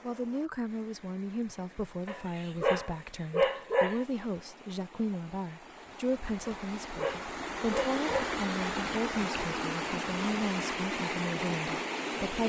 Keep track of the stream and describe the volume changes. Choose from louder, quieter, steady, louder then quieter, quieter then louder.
louder.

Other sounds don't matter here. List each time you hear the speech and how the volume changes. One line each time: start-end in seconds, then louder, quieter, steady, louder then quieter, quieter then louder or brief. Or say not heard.
0.0-12.4 steady.